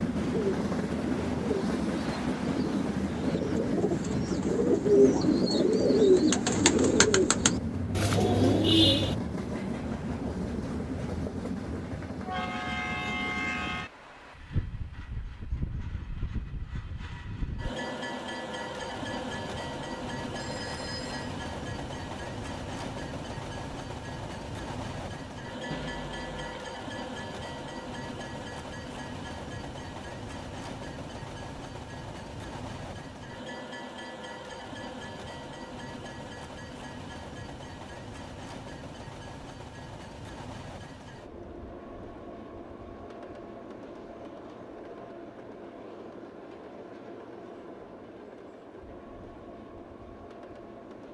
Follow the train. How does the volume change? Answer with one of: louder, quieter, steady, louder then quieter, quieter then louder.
quieter.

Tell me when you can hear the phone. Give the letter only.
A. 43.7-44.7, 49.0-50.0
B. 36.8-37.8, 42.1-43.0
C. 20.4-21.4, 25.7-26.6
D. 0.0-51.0
C.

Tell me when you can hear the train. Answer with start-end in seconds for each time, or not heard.
0.0-51.0.